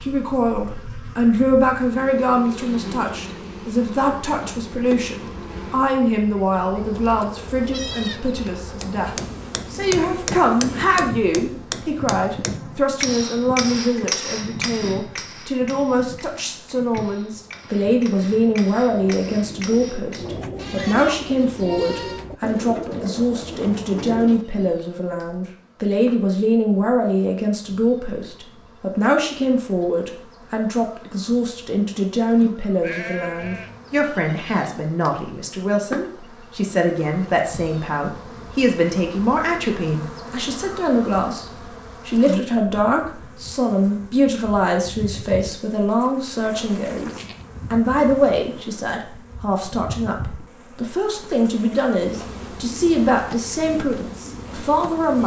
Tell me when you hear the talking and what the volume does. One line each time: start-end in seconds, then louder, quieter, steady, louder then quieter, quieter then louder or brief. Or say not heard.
0.0-55.2 steady.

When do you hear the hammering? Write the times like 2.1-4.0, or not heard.
8.8-20.3.